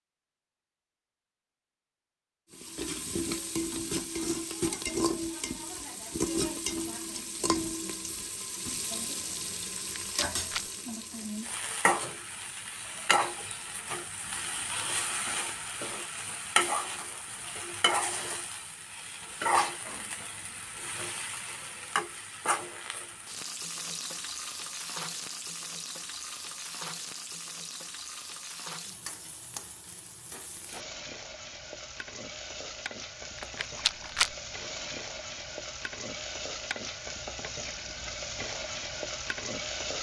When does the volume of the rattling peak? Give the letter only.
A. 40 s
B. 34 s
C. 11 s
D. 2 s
B.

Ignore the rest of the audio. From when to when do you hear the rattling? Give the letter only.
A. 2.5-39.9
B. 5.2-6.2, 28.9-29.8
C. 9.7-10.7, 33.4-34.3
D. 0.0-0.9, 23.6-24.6
C.